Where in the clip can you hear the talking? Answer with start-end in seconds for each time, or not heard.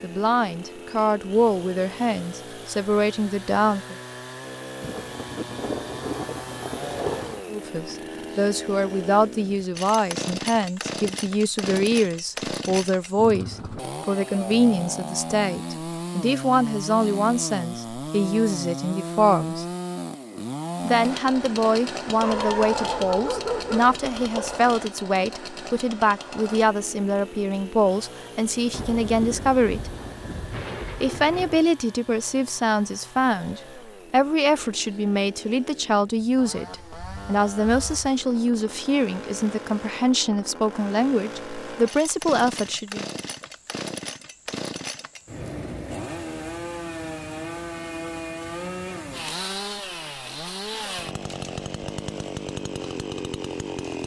0.0-4.0, 7.5-19.6, 20.9-29.9, 31.0-43.0.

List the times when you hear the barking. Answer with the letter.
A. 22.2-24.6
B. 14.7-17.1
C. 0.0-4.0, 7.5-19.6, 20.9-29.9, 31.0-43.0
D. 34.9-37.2
A.